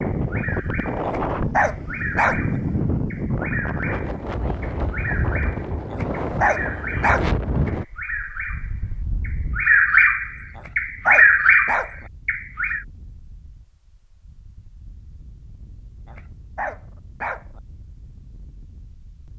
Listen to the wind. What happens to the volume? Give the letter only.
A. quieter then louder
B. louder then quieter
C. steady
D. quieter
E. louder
D.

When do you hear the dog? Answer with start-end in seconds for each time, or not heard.
1.1-2.5, 5.9-7.2, 10.6-12.1, 16.1-17.6.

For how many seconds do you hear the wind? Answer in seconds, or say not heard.
19 s.